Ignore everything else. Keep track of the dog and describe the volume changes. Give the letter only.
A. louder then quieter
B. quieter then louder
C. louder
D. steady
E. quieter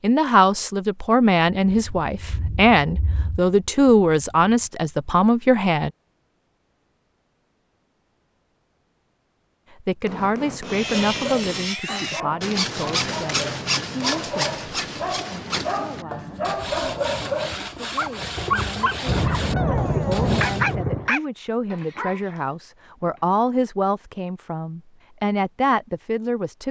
C.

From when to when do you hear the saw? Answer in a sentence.
The saw can be heard from 10.6 to 20.8 s.